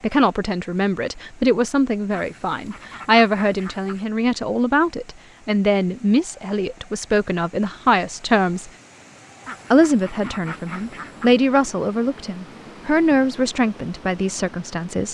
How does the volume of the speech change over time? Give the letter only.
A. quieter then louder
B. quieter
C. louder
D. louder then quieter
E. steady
E.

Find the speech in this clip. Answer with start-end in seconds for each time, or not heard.
0.0-8.7, 9.7-15.0.